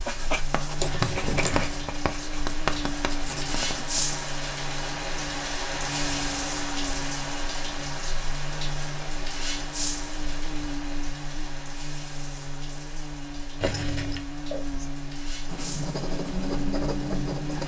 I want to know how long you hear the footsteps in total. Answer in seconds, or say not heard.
not heard.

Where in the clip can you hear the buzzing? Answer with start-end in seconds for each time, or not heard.
0.0-17.6.